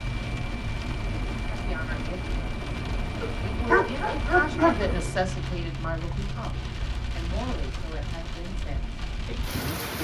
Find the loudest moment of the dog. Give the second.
5 s.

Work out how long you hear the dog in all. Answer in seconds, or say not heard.
2 s.